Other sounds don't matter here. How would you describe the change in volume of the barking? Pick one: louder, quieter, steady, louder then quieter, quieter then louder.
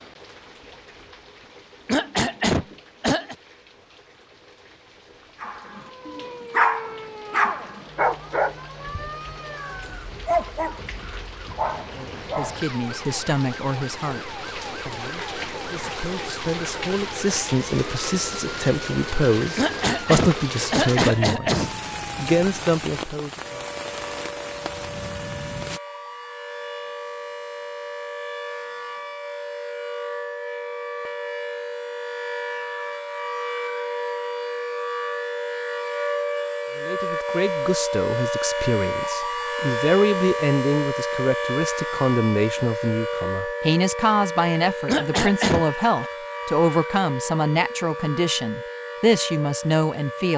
quieter.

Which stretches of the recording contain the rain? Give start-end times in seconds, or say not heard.
0.0-25.8.